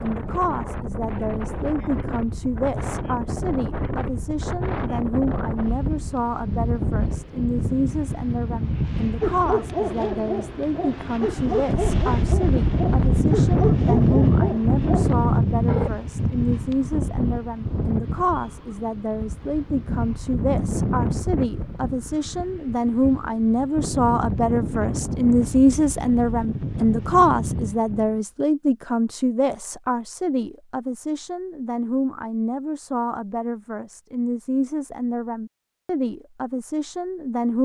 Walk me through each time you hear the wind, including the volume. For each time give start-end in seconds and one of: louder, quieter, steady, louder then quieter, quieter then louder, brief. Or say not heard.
0.0-28.2 louder then quieter.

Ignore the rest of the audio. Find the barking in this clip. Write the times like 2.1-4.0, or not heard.
9.2-15.9.